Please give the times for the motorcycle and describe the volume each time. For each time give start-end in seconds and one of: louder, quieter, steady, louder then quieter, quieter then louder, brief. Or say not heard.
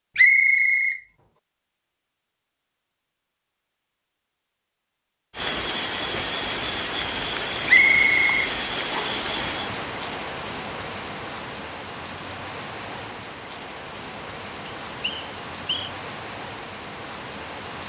not heard.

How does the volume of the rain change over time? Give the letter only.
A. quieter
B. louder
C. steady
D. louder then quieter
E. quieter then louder
A.